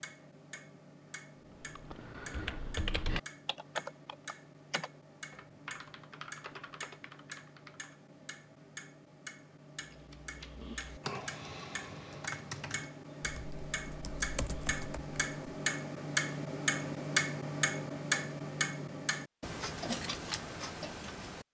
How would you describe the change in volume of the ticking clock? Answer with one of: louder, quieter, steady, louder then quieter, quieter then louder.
louder.